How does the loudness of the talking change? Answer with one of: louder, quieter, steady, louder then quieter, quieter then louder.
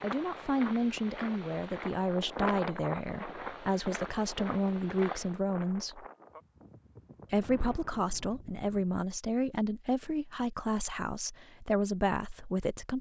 steady.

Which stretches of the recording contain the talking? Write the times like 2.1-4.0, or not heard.
0.0-6.0, 7.3-12.9.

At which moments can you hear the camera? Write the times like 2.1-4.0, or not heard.
not heard.